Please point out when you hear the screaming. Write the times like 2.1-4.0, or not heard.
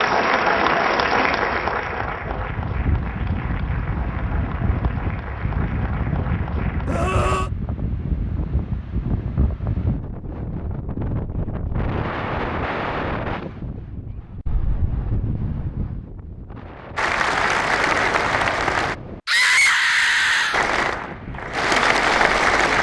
6.8-7.5, 19.2-20.6.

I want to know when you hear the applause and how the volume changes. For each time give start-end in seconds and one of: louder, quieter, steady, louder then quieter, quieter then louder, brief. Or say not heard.
0.0-7.3 quieter
16.9-18.9 brief
20.5-22.7 brief.